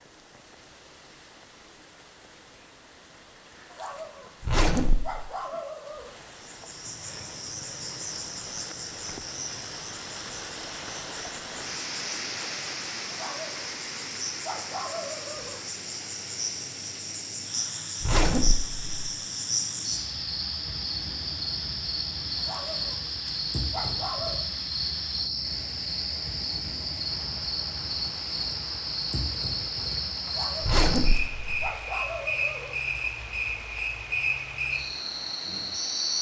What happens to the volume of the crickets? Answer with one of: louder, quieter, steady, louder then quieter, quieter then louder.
louder.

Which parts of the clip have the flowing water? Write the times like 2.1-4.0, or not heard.
0.0-36.1.